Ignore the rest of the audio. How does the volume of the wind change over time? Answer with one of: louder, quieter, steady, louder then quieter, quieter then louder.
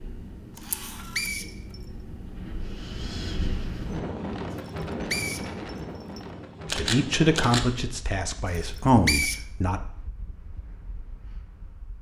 louder then quieter.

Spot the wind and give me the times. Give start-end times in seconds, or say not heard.
0.0-11.9.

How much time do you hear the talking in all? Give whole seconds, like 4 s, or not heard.
3 s.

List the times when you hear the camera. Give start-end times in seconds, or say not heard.
0.6-1.3, 6.7-7.7.